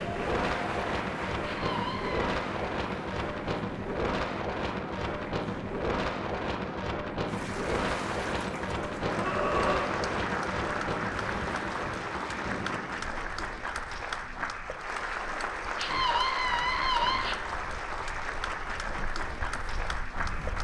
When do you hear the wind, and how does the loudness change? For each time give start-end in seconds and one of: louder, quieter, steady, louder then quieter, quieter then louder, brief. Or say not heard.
0.0-20.5 quieter.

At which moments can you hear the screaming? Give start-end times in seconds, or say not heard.
1.4-2.4, 9.1-9.9, 15.8-17.4.